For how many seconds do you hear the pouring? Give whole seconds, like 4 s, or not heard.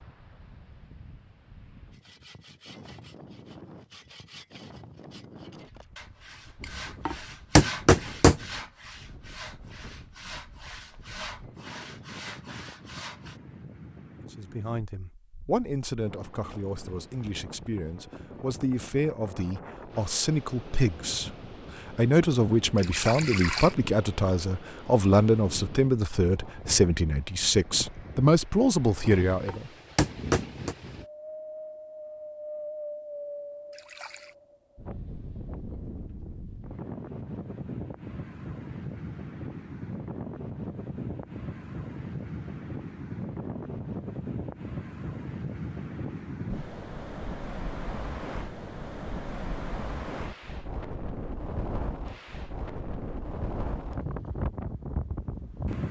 2 s.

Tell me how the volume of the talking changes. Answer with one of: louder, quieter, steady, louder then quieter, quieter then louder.
louder.